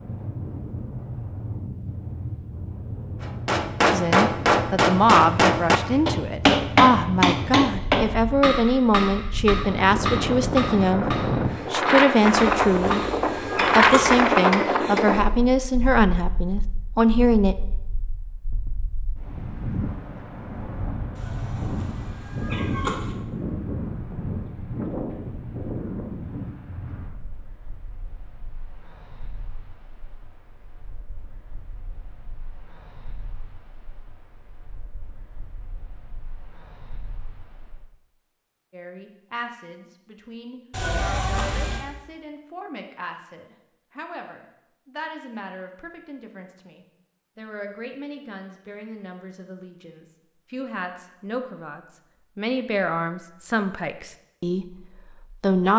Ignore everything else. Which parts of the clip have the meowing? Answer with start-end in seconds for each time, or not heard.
12.2-14.2, 21.1-23.1, 40.7-41.9.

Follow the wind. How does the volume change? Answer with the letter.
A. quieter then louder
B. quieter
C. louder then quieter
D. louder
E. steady
C.